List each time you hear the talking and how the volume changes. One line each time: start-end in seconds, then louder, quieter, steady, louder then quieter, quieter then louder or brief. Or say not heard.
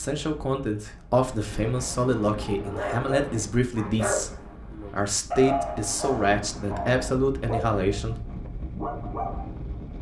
0.0-8.2 steady.